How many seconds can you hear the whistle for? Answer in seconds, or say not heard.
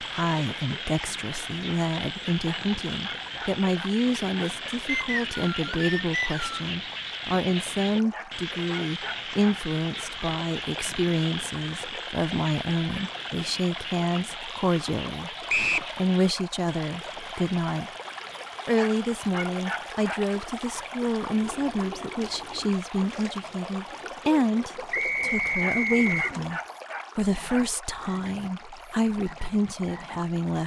4 s.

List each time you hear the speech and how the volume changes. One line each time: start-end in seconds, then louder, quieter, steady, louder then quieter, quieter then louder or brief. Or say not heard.
0.0-15.3 steady
15.9-17.9 brief
18.6-30.6 steady.